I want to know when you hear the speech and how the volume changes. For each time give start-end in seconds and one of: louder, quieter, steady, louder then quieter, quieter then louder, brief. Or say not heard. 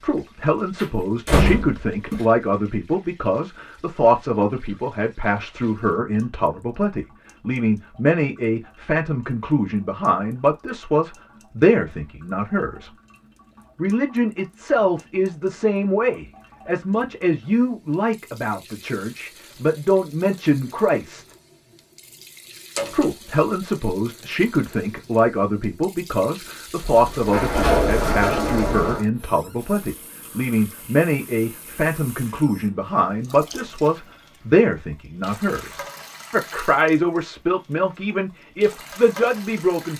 0.0-12.9 steady
13.8-21.2 quieter then louder
22.9-39.9 steady.